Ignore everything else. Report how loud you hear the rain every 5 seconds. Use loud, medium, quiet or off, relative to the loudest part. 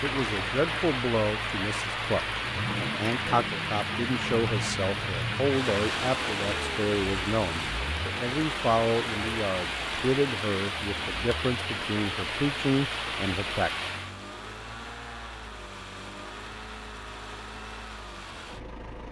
loud, loud, loud, off.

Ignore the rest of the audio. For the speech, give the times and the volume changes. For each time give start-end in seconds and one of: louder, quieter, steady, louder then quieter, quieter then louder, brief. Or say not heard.
0.0-13.7 steady.